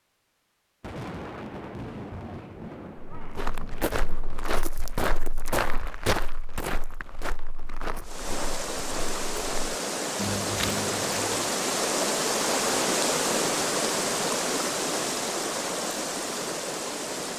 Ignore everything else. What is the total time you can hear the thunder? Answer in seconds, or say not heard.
4 s.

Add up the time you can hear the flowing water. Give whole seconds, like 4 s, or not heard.
9 s.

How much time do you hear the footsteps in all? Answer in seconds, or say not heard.
8 s.